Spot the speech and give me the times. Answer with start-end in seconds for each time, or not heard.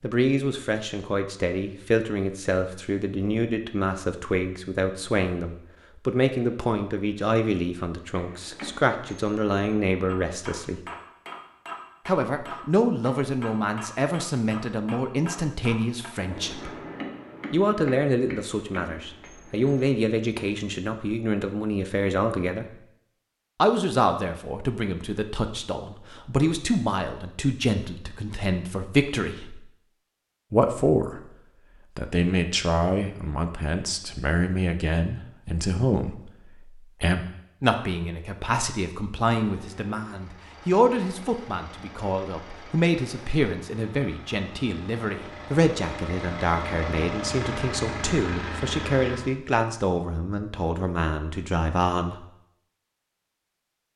0.0-10.8, 12.1-16.7, 17.5-22.8, 23.6-29.6, 30.5-31.2, 31.9-52.2.